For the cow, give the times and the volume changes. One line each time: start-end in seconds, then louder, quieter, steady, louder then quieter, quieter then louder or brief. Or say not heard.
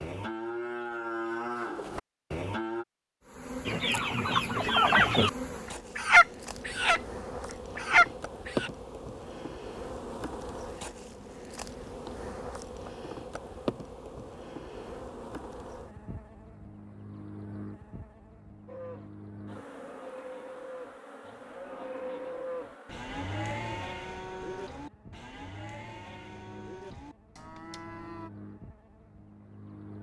0.0-2.9 brief
18.6-28.3 louder then quieter.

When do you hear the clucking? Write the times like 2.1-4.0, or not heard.
3.6-5.3, 6.0-7.0, 7.8-8.7.